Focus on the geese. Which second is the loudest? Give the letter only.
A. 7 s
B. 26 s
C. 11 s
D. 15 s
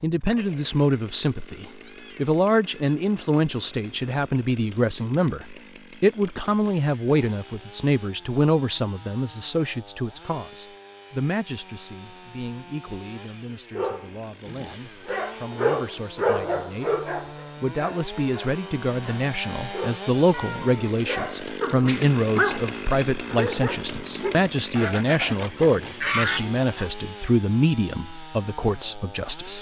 B.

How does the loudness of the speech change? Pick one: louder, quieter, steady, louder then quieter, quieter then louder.
quieter then louder.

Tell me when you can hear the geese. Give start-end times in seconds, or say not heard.
24.8-26.9.